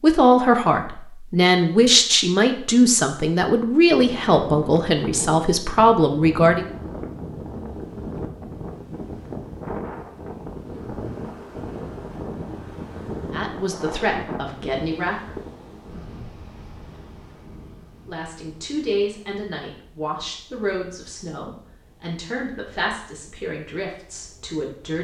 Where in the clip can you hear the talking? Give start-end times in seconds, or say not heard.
0.0-6.7, 13.3-15.3, 18.1-24.9.